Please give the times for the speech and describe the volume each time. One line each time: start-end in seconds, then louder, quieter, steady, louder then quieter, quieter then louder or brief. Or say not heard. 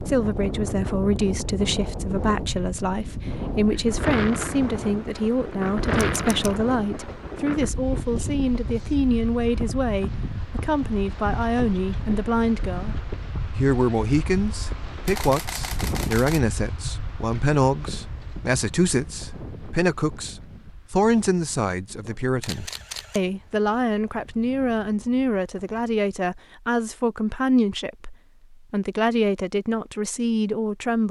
0.0-31.0 steady.